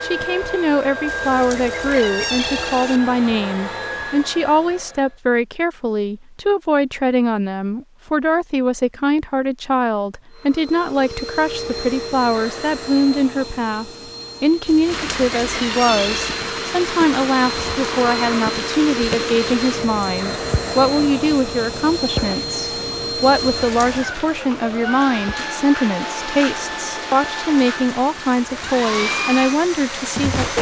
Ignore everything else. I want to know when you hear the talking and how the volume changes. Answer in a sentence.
The talking can be heard from 0.0 to 30.5 s, at a steady volume.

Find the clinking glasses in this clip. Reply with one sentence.
You can't hear the clinking glasses here.